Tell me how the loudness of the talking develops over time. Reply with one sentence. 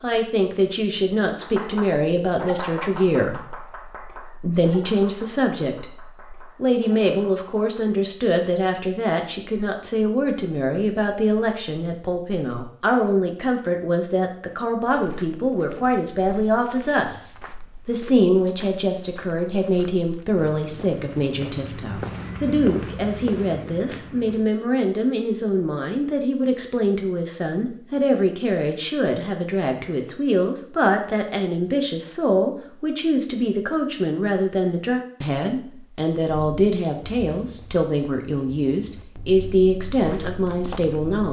The volume of the talking stays about the same.